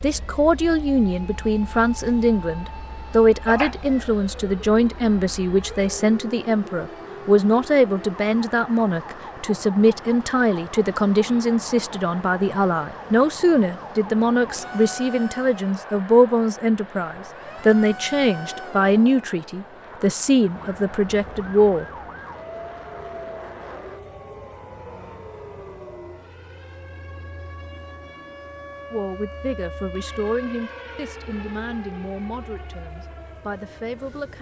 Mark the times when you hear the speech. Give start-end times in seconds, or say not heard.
0.0-21.9, 28.9-34.3.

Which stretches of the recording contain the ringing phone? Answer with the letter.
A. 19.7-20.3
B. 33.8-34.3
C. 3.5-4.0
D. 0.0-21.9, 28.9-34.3
C.